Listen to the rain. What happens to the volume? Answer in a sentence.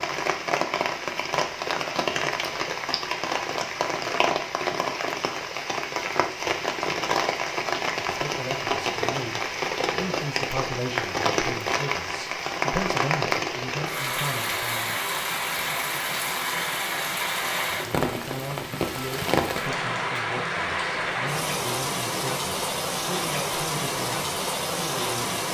The volume of the rain stays about the same.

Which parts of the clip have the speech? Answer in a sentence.
You can hear the speech from 8.1 to 14.9 s and from 17.7 to 25.4 s.